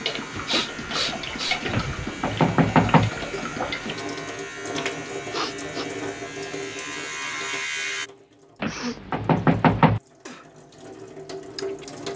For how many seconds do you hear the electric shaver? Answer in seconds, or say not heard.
8 s.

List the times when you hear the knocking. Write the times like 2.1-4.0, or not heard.
1.7-3.1, 8.6-10.0.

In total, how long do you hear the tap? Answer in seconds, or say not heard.
12 s.